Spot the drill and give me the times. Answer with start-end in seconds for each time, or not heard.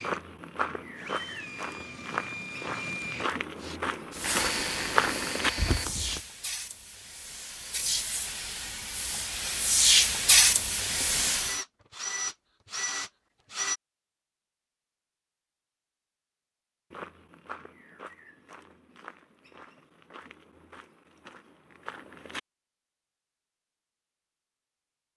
0.0-5.9, 10.8-13.8.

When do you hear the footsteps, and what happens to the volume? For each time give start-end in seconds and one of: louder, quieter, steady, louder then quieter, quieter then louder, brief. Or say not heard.
0.0-6.2 louder
16.9-22.4 quieter then louder.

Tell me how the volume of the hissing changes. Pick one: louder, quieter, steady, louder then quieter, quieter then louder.
louder.